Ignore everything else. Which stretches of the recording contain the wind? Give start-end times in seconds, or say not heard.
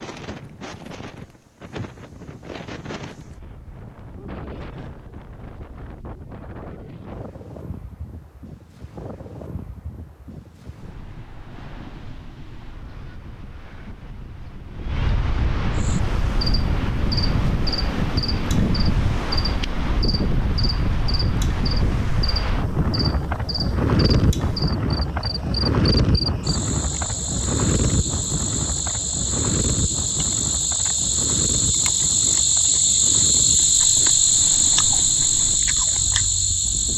0.0-36.9.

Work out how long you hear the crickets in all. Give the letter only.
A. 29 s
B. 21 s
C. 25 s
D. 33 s
B.